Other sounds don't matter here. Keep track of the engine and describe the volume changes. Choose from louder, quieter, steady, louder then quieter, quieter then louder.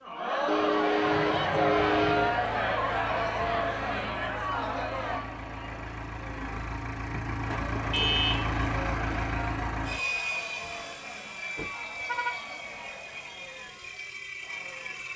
louder then quieter.